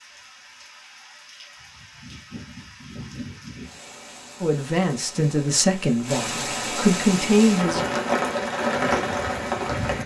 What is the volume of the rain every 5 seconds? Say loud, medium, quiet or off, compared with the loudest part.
quiet, loud.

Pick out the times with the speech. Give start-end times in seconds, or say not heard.
4.4-7.8.